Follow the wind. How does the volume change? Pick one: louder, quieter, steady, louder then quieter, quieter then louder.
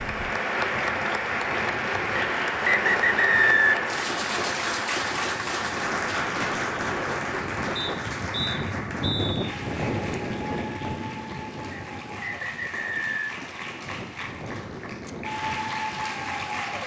louder then quieter.